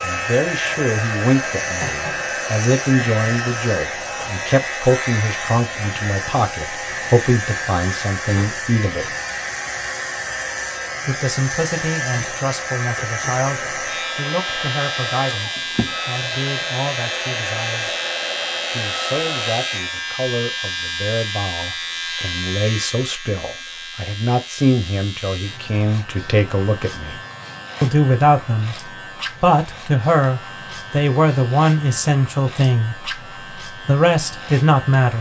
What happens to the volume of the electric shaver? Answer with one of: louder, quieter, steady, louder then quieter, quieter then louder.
quieter.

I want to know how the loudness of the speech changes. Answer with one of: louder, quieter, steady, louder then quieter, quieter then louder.
quieter then louder.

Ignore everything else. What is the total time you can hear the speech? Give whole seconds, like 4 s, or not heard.
32 s.